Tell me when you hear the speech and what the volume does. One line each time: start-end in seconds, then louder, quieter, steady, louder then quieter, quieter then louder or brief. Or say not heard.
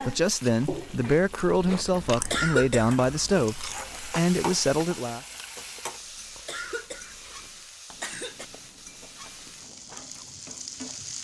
0.0-5.2 steady.